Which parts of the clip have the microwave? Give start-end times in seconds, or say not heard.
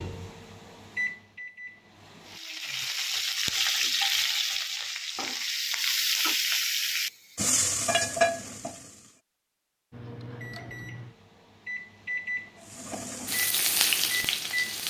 0.0-2.4, 9.9-14.8.